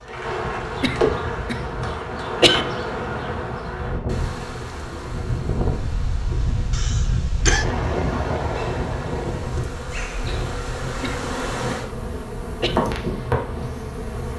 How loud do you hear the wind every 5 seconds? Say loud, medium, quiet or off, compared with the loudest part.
medium, loud, medium.